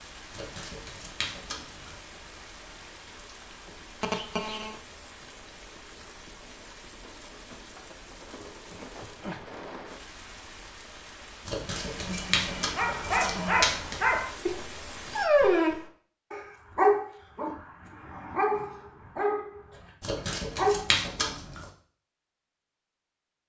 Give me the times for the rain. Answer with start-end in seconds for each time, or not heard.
0.0-15.3.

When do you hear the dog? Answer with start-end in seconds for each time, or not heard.
12.6-21.3.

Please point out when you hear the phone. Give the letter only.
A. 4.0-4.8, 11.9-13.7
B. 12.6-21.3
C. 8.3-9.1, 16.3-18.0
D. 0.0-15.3
A.